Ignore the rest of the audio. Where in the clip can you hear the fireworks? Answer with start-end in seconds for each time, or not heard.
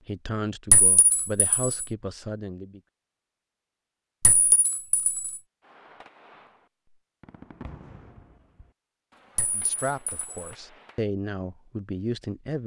5.6-11.0.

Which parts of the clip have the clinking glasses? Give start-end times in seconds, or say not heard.
0.7-1.9, 4.2-5.4, 9.3-10.6.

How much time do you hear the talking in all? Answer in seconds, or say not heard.
6 s.